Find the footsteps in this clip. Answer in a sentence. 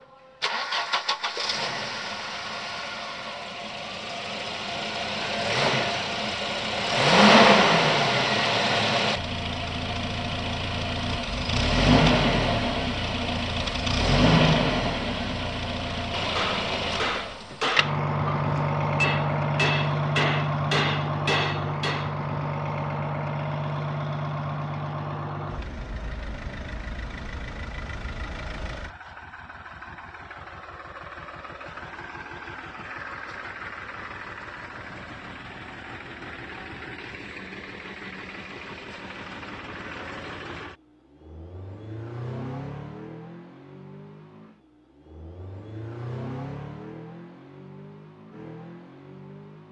You can't hear the footsteps here.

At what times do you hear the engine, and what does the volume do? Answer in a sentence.
The engine can be heard from 0.0 to 49.6 s, getting quieter.